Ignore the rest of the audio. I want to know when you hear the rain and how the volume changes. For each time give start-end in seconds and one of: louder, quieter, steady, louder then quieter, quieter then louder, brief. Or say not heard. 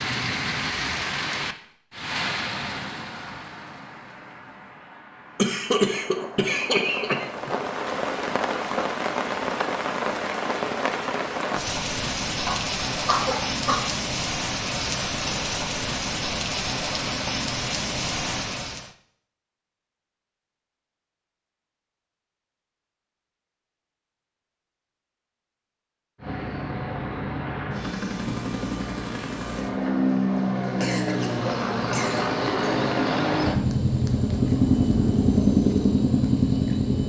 0.0-18.9 quieter then louder.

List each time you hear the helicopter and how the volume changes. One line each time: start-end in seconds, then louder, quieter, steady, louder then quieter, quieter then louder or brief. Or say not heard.
26.1-37.0 louder.